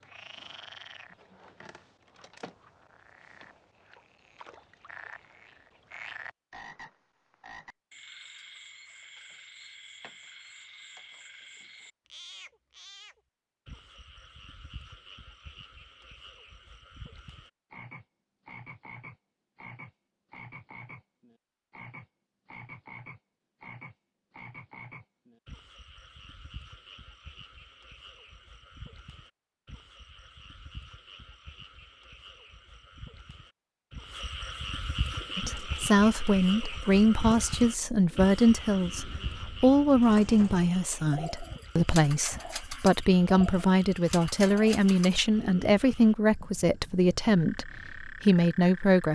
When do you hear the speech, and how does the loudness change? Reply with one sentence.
The speech can be heard from 35.4 to 49.0 s, at a steady volume.